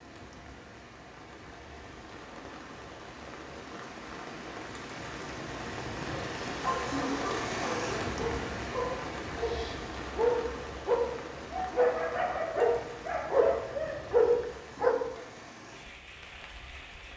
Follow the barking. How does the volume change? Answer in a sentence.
The loudness of the barking goes up.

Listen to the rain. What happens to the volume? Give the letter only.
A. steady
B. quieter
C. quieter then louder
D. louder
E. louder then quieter
E.